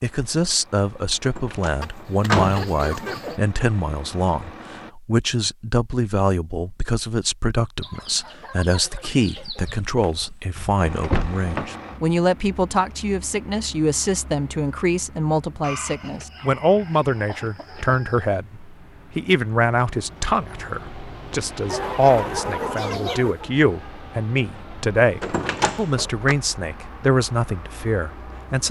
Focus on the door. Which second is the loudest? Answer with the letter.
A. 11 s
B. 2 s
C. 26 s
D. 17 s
B.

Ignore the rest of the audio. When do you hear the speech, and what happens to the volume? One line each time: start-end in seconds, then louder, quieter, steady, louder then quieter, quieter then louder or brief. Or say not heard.
0.0-28.6 steady.